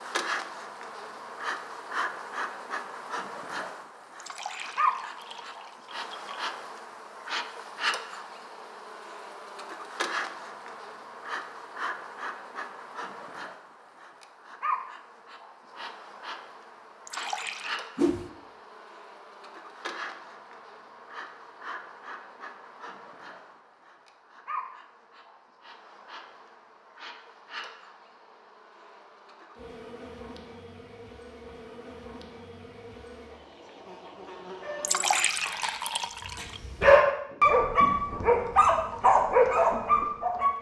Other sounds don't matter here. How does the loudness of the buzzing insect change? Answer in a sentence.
The volume of the buzzing insect goes down.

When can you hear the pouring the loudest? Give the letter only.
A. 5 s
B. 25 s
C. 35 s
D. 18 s
C.